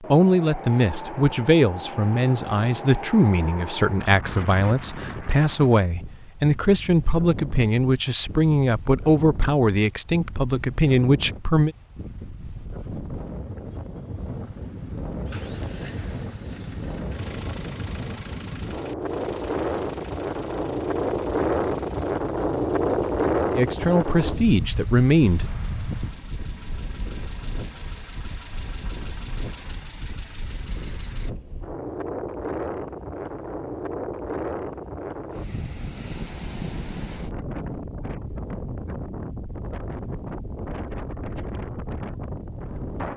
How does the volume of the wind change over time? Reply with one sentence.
The loudness of the wind goes up, then down.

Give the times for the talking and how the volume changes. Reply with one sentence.
The talking can be heard from 0.0 to 11.8 s, at a steady volume; and briefly from 23.6 to 25.5 s.